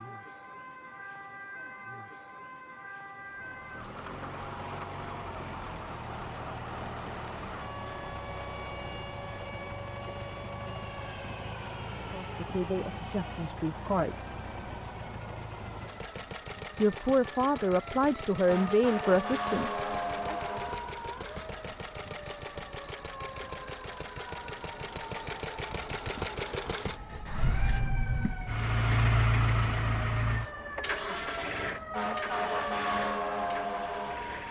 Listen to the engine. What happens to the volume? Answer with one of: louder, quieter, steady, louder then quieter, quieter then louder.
louder.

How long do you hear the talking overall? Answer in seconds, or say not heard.
6 s.